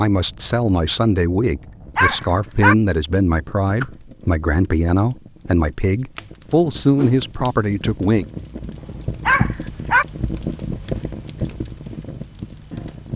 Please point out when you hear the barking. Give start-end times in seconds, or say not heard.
1.9-2.8, 9.2-10.1.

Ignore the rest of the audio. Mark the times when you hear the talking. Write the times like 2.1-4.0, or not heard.
0.0-8.2.